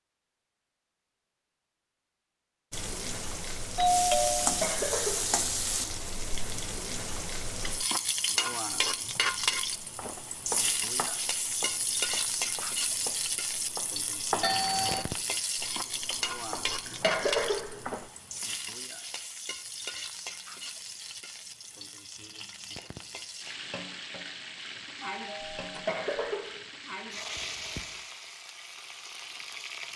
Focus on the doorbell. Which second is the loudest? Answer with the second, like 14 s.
4 s.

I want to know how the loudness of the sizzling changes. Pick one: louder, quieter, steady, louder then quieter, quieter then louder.
quieter.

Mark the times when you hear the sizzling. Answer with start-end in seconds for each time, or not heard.
2.7-29.9.